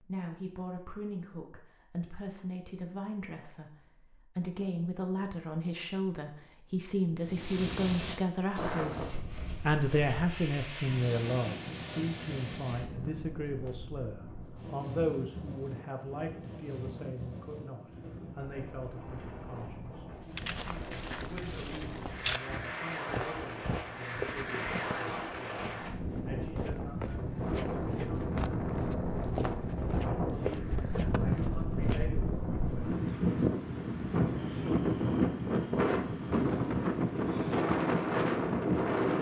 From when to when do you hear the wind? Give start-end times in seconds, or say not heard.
7.2-39.1.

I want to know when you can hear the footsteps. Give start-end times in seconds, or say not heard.
20.2-32.5.